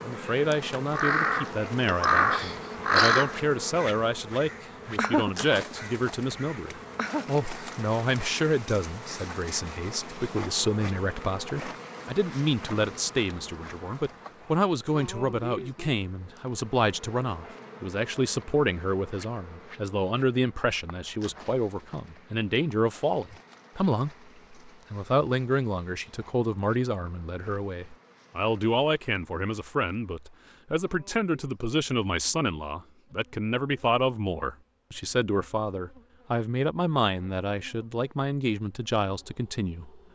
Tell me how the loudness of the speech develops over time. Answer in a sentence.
The volume of the speech stays about the same.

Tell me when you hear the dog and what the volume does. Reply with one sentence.
The dog can't be heard in this clip.